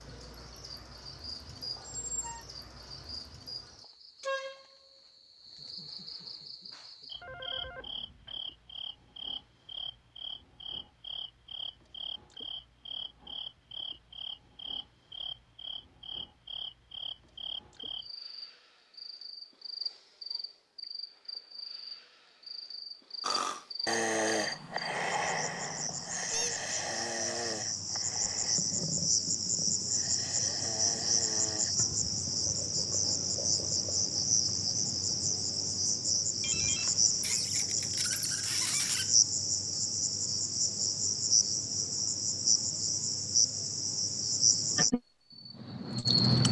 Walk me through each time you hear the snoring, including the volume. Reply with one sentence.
The snoring can be heard from 23.2 to 31.8 s, getting quieter.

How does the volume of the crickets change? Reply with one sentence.
The volume of the crickets goes up.